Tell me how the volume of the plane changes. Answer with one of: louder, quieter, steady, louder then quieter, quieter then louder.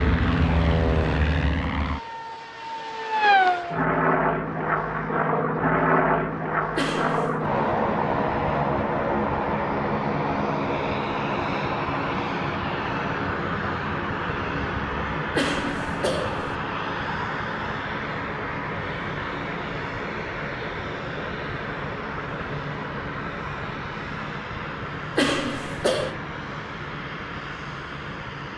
quieter.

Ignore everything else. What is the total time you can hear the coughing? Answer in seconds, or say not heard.
3 s.